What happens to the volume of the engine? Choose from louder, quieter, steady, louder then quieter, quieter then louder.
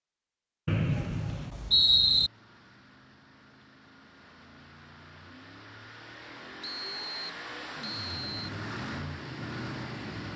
louder.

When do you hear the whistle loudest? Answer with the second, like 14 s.
2 s.